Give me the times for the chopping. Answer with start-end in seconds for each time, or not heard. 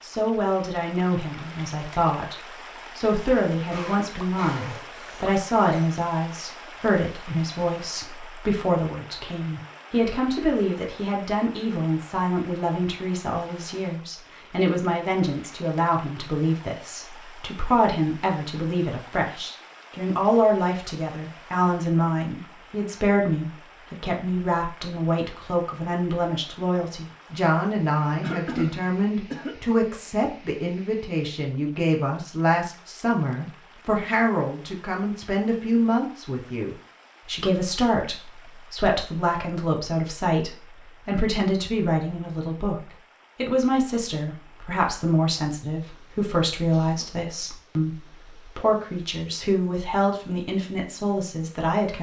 not heard.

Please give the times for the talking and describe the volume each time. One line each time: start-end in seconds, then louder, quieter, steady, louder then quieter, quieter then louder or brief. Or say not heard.
0.0-2.4 brief
3.0-51.9 steady.